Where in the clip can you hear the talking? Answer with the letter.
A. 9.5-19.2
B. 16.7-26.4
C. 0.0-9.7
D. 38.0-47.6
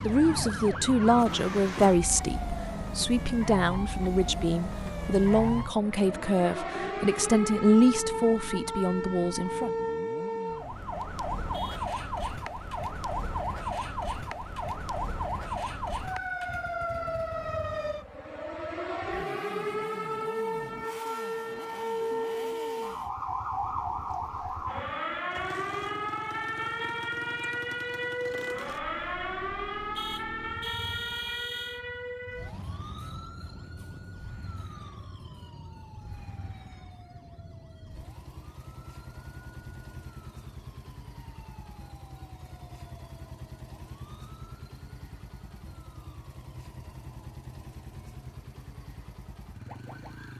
C.